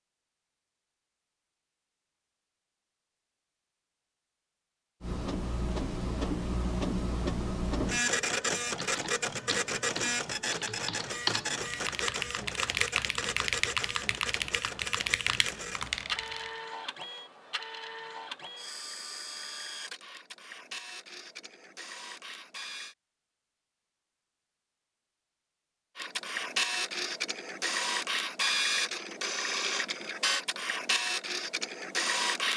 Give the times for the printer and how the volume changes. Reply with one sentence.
The printer can be heard from 5.0 to 22.9 s, getting quieter; and from 25.9 to 32.5 s, at a steady volume.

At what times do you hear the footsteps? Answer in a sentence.
The footsteps can't be heard in this clip.